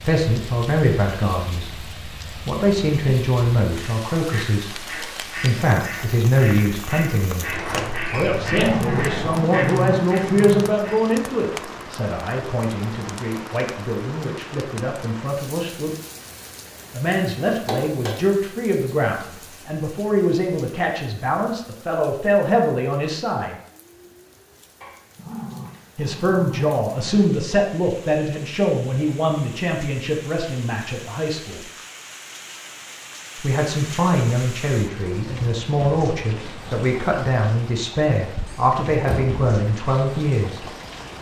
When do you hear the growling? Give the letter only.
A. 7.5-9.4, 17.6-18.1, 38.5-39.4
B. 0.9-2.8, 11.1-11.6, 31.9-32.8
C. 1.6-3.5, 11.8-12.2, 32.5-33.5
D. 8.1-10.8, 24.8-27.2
D.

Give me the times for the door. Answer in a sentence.
The door can be heard from 7.5 to 9.4 s, from 17.6 to 18.1 s and from 38.5 to 39.4 s.